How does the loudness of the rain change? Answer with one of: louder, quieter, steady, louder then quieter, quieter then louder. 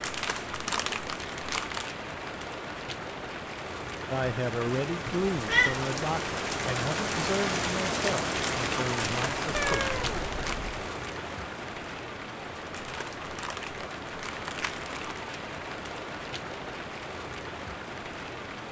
louder then quieter.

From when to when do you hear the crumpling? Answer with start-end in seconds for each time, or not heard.
0.0-1.9, 8.9-10.7, 12.7-15.2.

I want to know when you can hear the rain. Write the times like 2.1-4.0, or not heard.
0.0-18.6.